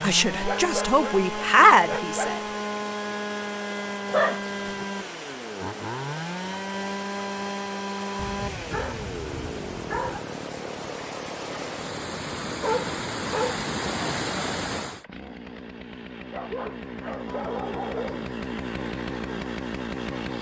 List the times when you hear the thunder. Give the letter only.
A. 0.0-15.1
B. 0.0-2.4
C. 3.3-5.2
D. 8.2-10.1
D.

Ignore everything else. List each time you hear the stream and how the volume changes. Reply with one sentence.
The stream can be heard from 0.0 to 15.1 s, getting louder.